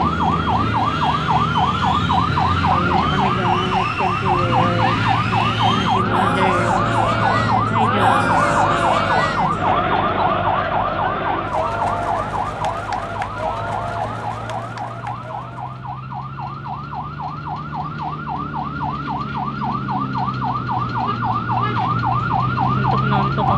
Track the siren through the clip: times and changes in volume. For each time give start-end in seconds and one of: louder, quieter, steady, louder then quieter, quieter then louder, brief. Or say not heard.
0.0-23.5 quieter then louder.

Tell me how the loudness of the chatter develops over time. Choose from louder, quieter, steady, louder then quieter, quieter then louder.
louder then quieter.